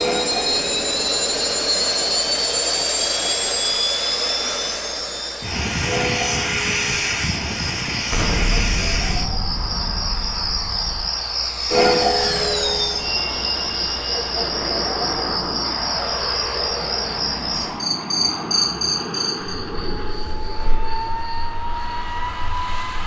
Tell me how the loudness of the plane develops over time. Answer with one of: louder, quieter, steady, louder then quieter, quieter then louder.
quieter.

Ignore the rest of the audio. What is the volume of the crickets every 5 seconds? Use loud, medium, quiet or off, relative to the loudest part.
medium, medium, loud, loud, quiet.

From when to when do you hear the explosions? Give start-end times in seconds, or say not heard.
8.1-11.1.